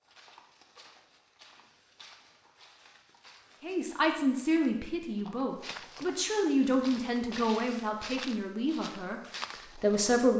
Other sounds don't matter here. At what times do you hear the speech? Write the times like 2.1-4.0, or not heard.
3.6-10.3.